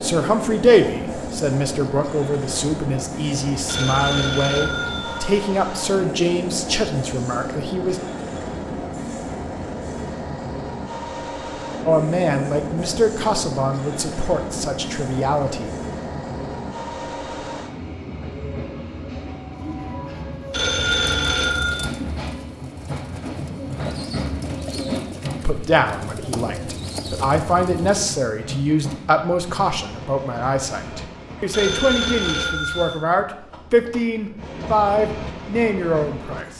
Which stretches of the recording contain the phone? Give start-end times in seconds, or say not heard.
3.6-5.2, 20.5-21.8, 31.5-33.0.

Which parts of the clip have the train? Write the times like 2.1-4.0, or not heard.
0.0-36.5.